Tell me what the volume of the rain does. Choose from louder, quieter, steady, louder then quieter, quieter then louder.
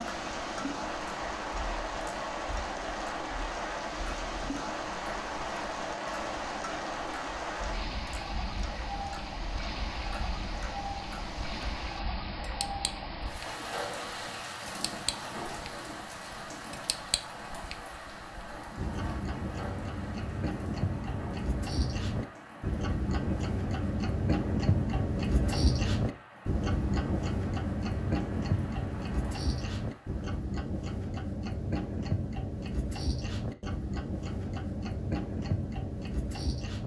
quieter.